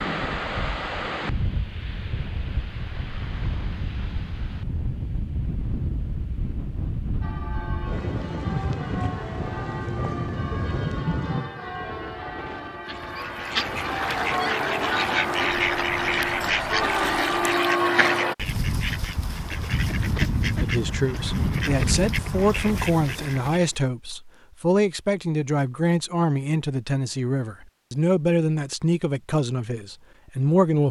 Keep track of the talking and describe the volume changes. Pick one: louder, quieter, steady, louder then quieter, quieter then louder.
steady.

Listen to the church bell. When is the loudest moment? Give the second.
18 s.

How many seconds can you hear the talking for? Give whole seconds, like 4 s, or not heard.
10 s.